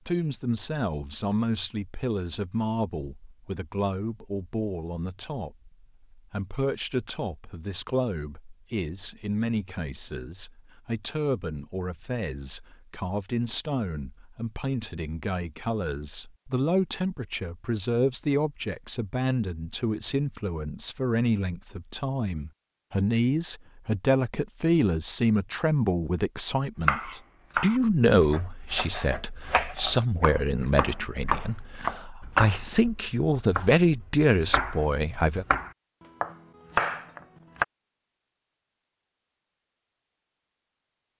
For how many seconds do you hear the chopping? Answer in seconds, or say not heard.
11 s.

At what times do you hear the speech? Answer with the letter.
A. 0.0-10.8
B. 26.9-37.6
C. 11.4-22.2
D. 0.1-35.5
D.